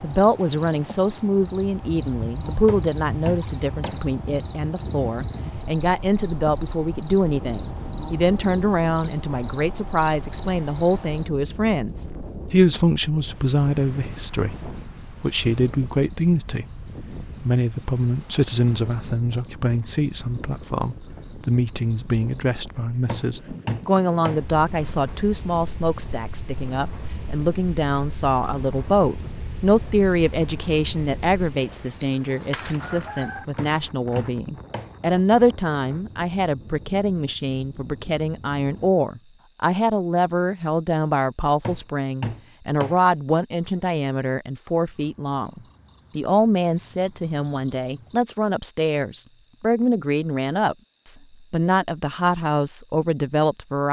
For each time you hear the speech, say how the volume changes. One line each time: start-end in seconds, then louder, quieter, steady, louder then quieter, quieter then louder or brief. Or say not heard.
0.0-53.8 steady.